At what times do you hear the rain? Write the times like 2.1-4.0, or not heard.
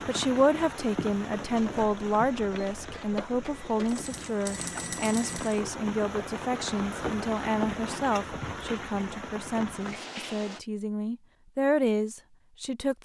0.0-10.6.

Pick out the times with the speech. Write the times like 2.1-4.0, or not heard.
0.1-13.0.